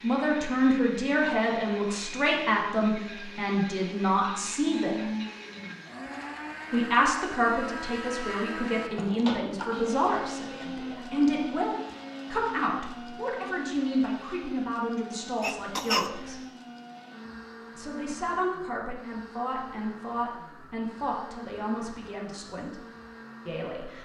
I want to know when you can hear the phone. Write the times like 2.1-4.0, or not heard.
not heard.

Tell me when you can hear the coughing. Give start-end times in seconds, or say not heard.
15.4-16.4.